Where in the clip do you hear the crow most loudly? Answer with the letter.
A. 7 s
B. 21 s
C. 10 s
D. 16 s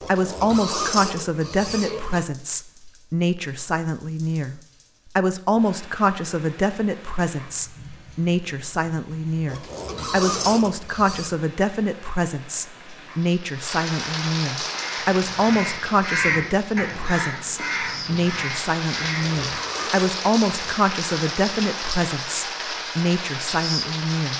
D.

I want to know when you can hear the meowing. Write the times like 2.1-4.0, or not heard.
not heard.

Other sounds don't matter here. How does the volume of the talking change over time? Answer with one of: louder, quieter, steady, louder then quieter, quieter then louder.
steady.